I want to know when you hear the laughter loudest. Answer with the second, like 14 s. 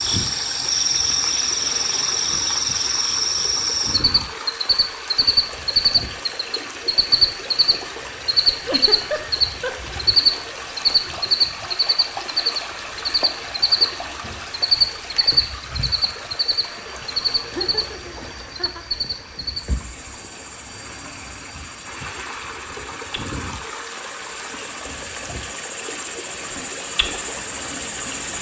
9 s.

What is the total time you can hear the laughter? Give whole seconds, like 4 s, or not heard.
3 s.